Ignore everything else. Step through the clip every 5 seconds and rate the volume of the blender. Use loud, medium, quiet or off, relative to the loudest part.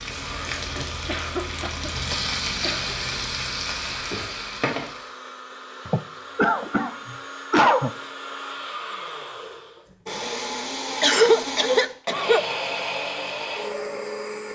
medium, medium, loud.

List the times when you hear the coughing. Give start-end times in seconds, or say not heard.
1.1-3.0, 5.8-7.9, 11.0-12.4.